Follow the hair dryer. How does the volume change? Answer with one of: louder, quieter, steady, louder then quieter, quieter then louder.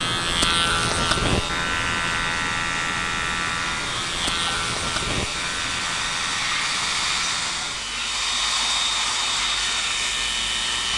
louder.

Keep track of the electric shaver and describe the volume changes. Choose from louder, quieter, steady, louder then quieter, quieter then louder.
quieter.